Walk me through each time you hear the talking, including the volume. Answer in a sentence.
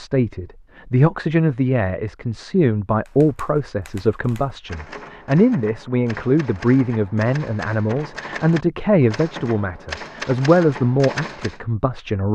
You can hear the talking from 0.0 to 12.2 s, at a steady volume.